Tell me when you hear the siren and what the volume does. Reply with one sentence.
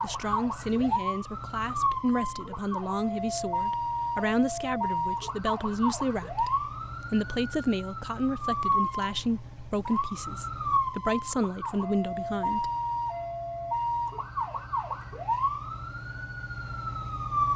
The siren can be heard from 0.0 to 17.5 s, at a steady volume.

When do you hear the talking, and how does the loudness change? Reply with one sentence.
The talking can be heard from 0.0 to 12.7 s, at a steady volume.